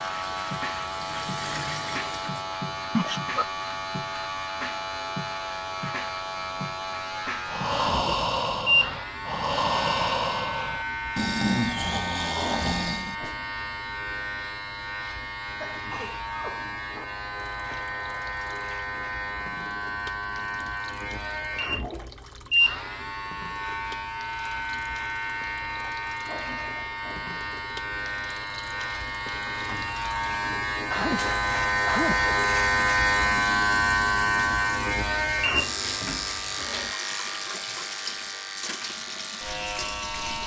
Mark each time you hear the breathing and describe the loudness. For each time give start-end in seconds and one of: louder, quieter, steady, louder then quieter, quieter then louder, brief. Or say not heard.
7.5-13.3 steady.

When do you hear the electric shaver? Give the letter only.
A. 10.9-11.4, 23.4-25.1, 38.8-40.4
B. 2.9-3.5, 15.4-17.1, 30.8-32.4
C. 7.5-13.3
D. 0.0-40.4
D.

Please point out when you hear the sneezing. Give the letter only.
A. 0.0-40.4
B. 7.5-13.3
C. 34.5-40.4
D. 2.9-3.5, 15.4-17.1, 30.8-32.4
D.